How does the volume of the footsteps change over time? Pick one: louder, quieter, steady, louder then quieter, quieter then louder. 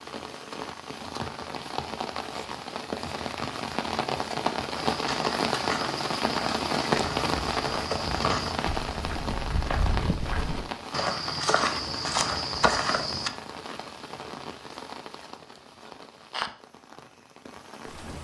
louder.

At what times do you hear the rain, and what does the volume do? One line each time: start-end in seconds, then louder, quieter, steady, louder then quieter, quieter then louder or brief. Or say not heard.
0.0-18.1 louder then quieter.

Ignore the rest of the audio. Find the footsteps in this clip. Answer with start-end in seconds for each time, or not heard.
4.8-13.3.